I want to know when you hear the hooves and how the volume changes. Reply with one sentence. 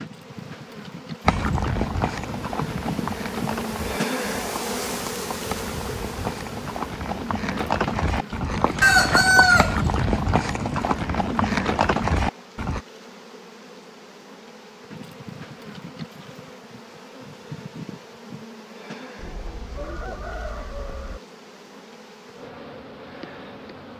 You can hear the hooves from 1.2 to 12.8 s, getting quieter then louder.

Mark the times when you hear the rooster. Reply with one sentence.
The rooster can be heard from 8.8 to 9.9 s and from 19.1 to 21.2 s.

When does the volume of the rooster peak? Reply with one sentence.
The loudest moment of the rooster is at 9 seconds.